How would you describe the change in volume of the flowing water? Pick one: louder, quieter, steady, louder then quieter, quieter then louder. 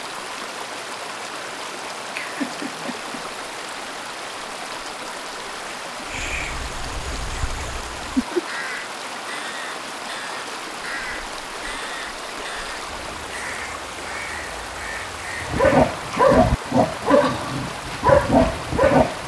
steady.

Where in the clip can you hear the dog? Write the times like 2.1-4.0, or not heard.
15.4-19.2.